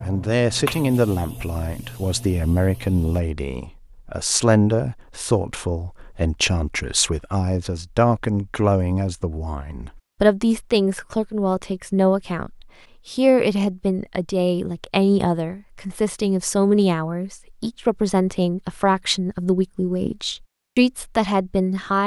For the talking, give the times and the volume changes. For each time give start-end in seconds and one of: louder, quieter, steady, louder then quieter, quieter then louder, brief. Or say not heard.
0.0-22.0 steady.